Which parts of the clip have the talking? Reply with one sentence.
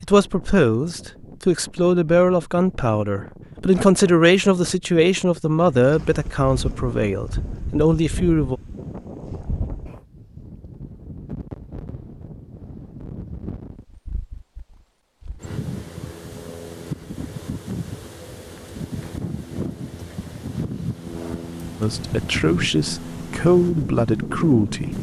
The talking can be heard from 0.0 to 8.6 s and from 21.8 to 24.9 s.